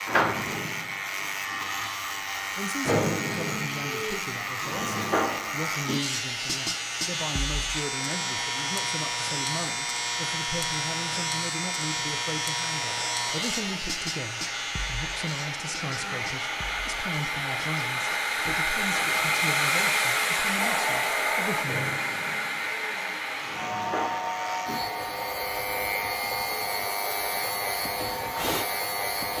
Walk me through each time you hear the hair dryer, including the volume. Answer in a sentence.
You can hear the hair dryer from 0.0 to 29.3 s, getting louder then quieter.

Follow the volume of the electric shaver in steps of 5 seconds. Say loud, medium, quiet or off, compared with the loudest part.
loud, loud, loud, medium, medium, loud.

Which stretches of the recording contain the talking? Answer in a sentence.
You can hear the talking from 2.5 to 22.0 s.